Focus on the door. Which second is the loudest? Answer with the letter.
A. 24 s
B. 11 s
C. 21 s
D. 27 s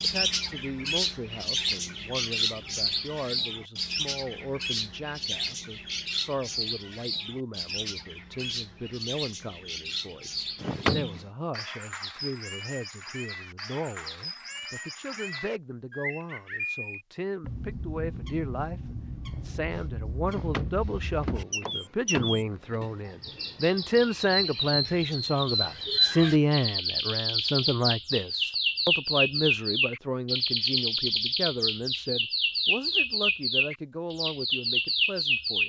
B.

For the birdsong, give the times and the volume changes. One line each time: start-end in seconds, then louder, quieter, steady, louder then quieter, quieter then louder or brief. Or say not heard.
0.0-35.6 quieter then louder.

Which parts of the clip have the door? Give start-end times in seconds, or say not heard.
10.6-11.2, 20.2-22.9.